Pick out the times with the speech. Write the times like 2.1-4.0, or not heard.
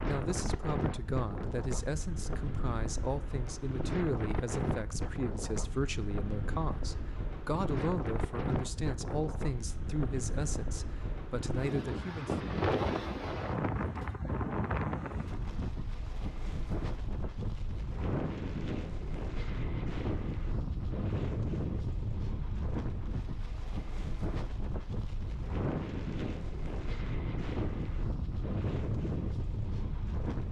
0.1-12.3.